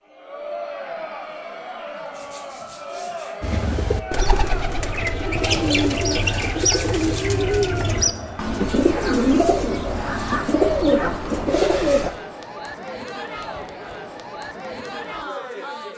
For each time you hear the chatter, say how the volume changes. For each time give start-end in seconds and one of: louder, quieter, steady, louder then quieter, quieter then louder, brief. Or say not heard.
0.0-15.9 steady.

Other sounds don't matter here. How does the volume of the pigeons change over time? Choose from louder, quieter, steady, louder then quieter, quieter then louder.
louder.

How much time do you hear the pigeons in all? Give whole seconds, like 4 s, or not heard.
9 s.